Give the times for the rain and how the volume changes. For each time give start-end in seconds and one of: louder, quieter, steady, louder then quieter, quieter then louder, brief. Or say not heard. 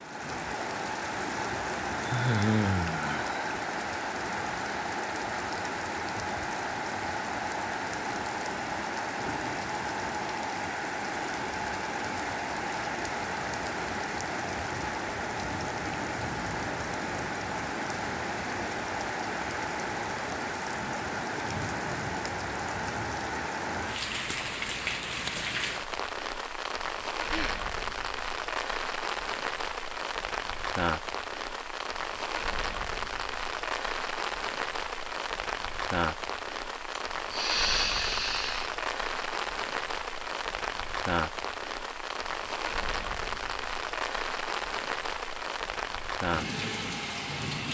0.0-47.6 steady.